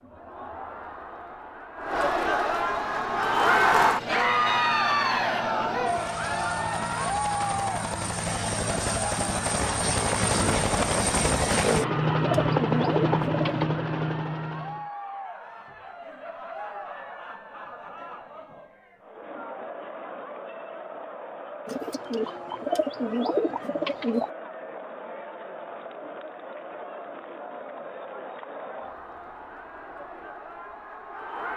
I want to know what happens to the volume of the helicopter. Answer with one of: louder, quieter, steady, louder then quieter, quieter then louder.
louder.